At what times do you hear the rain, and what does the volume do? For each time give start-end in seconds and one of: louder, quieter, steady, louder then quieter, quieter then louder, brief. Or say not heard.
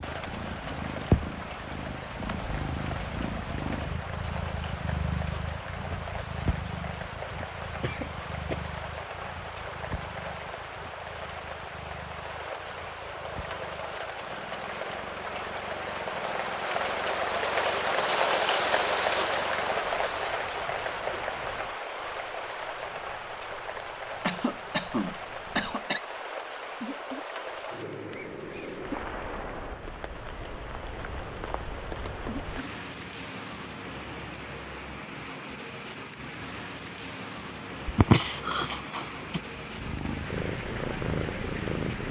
0.0-42.0 louder then quieter.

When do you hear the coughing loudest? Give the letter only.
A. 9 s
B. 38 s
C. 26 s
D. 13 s
B.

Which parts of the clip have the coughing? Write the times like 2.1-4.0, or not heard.
7.8-8.6, 23.8-26.0, 37.9-39.4.